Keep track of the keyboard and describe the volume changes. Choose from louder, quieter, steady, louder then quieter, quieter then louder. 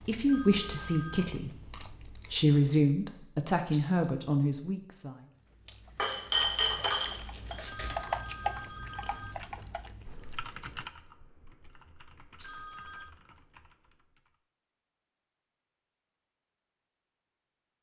quieter.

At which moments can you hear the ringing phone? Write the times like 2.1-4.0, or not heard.
0.2-1.4, 7.7-9.3, 12.4-13.1.